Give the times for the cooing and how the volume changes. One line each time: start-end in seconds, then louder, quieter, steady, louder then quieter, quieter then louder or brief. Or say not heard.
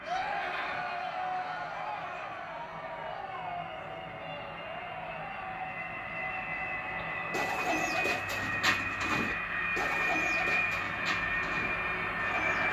7.0-12.6 quieter.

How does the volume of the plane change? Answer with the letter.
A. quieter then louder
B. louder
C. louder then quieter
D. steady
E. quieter
B.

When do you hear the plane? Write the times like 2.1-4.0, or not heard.
0.0-12.6.